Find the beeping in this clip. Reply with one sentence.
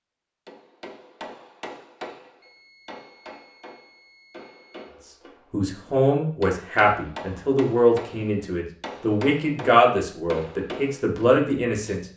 The beeping can be heard from 2.4 to 4.9 s.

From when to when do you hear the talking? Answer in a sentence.
You can hear the talking from 5.5 to 12.0 s.